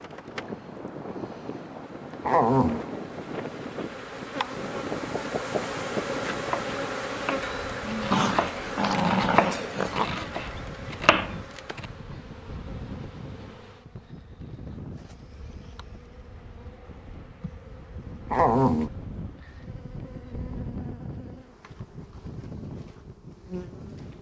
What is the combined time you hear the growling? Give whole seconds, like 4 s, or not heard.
3 s.